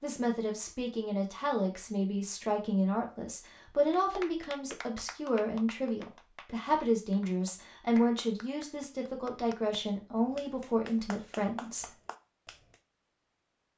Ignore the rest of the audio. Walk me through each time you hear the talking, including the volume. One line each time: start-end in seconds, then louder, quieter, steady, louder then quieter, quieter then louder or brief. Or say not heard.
0.0-11.9 steady.